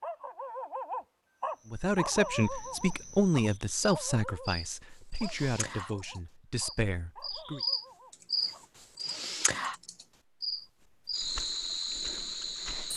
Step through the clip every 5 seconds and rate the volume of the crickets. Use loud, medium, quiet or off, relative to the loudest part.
quiet, loud, loud.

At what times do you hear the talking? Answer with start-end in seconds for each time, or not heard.
1.6-7.6.